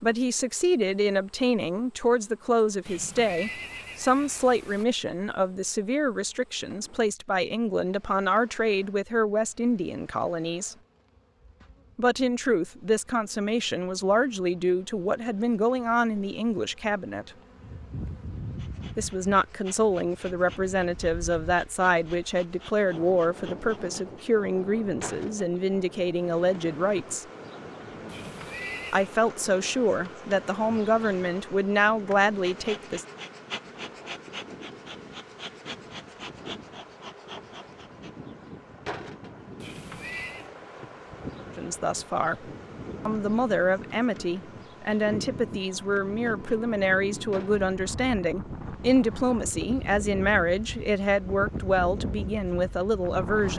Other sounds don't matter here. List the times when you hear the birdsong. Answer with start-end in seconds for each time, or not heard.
not heard.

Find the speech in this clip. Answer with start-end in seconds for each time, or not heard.
0.0-10.8, 11.9-17.3, 18.9-27.2, 28.9-33.0, 41.5-42.4, 43.0-53.5.